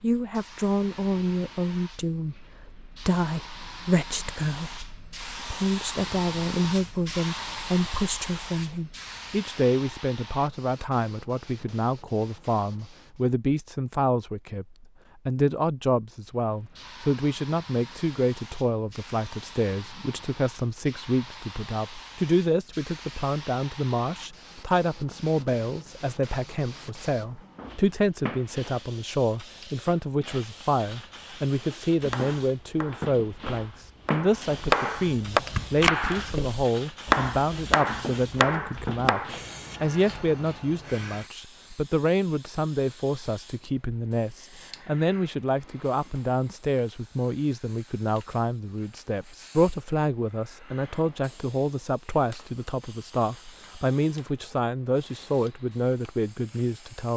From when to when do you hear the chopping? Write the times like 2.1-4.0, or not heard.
32.1-39.4.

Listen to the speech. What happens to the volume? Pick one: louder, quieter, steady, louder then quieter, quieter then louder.
steady.